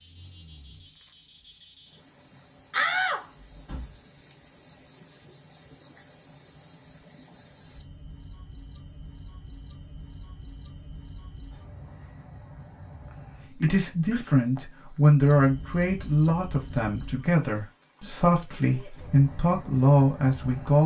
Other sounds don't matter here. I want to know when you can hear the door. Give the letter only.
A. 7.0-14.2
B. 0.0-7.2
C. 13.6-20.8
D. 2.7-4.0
D.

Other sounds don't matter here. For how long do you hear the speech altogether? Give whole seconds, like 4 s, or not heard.
7 s.